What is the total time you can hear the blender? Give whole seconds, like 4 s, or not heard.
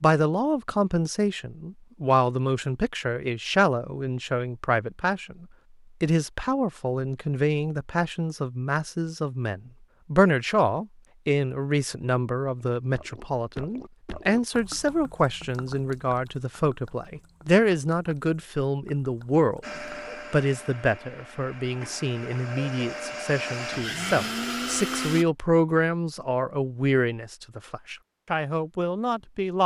6 s.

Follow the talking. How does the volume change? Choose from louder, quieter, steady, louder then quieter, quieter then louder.
steady.